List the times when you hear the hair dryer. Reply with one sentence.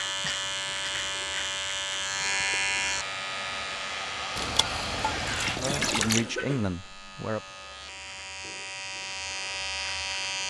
The hair dryer can be heard from 3.0 to 5.6 s.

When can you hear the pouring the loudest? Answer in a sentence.
The volume of the pouring peaks at 6 seconds.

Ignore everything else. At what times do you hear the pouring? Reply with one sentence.
The pouring can be heard from 4.3 to 6.2 s.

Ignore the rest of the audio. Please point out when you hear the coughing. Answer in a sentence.
The coughing can be heard from 0.2 to 1.1 s and from 5.7 to 7.8 s.